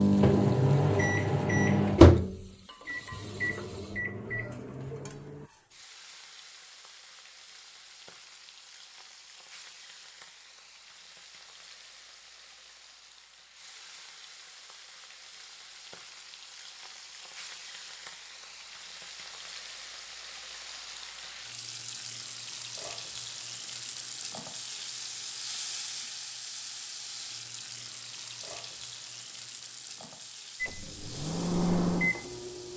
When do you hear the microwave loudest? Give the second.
2 s.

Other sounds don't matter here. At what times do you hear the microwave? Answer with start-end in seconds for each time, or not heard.
0.0-5.5, 30.6-32.7.